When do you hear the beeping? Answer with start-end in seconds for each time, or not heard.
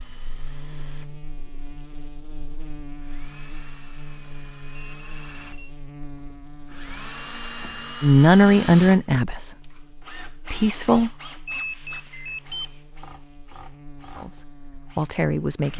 4.8-5.8, 11.4-12.8.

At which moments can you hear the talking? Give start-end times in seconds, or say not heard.
8.0-9.8, 10.5-11.1, 14.2-15.7.